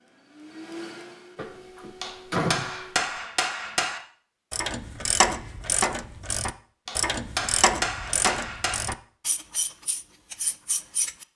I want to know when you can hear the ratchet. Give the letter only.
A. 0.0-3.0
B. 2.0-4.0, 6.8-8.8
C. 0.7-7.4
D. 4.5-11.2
D.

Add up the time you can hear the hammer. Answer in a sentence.
You can hear the hammer for 4 seconds altogether.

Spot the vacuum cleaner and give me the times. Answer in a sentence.
The vacuum cleaner can be heard from 0.0 to 3.0 s.